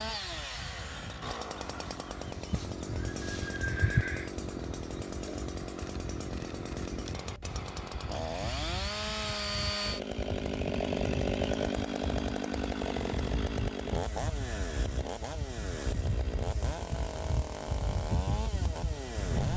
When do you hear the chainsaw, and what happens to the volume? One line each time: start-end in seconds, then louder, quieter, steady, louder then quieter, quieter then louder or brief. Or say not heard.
0.0-19.5 louder then quieter.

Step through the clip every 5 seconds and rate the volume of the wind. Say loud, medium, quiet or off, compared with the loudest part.
medium, medium, loud, loud.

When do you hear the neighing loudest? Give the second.
4 s.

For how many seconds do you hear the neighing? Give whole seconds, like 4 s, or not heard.
2 s.